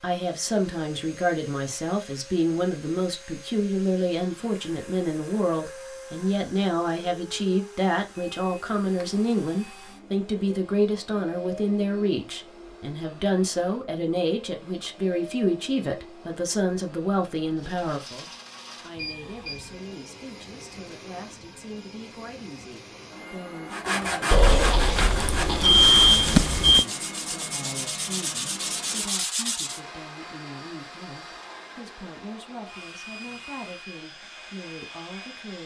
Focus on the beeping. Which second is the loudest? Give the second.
26 s.